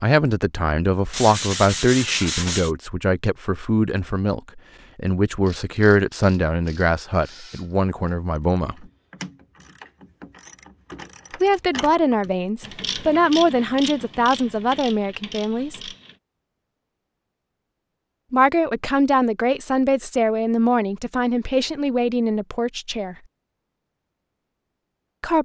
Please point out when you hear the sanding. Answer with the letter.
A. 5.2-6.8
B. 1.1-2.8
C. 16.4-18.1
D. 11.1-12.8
B.